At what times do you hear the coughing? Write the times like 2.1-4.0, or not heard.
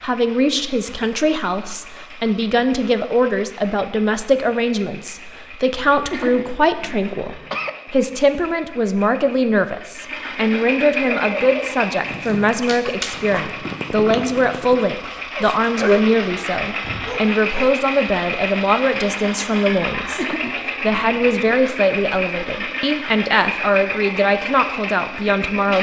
6.1-7.7, 20.1-21.5.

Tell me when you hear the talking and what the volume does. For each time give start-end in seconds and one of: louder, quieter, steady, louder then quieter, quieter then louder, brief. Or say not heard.
0.0-25.7 steady.